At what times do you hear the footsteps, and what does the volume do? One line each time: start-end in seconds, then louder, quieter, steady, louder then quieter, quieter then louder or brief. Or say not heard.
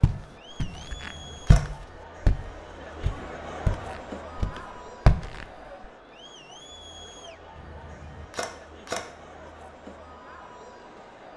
0.0-5.5 louder then quieter.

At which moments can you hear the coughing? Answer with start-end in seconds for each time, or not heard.
not heard.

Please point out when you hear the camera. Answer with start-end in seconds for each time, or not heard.
0.7-1.6, 7.5-9.0.